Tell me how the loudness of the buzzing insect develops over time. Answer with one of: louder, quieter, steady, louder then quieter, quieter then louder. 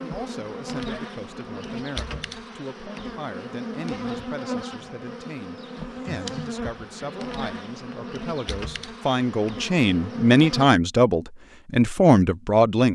steady.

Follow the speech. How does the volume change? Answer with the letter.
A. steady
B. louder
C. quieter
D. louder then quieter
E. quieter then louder
B.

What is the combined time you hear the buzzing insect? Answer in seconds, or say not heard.
11 s.